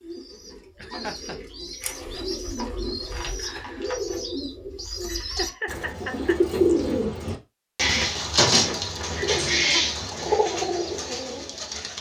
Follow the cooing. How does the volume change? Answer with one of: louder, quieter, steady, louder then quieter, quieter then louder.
louder.